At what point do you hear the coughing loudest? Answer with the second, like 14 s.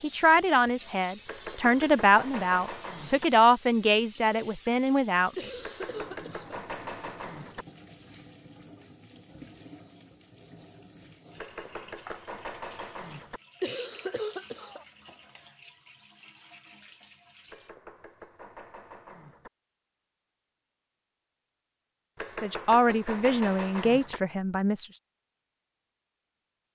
14 s.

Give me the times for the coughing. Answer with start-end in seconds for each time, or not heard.
5.3-6.6, 13.6-14.8.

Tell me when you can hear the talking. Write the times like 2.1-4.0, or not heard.
0.0-5.3, 22.4-24.9.